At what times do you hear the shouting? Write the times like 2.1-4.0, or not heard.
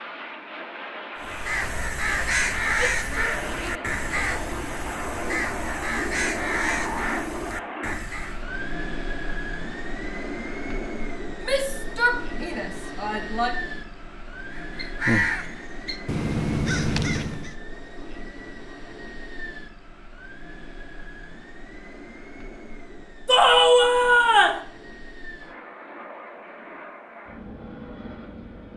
2.8-4.0, 11.4-13.6, 23.2-24.6.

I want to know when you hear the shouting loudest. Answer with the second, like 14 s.
24 s.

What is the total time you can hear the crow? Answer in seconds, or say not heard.
10 s.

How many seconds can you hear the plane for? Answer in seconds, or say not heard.
29 s.